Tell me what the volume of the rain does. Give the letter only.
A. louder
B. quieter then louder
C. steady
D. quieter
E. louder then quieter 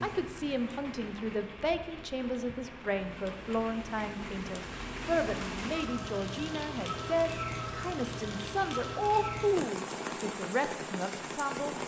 A.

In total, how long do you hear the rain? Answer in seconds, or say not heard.
12 s.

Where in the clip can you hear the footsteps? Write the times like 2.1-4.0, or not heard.
not heard.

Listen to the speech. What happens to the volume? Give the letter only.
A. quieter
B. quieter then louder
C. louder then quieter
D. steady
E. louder
D.